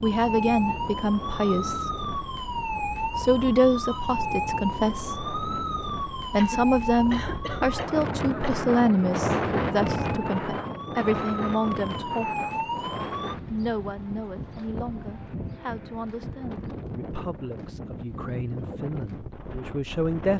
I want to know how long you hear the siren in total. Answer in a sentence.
The siren can be heard for 13 seconds in total.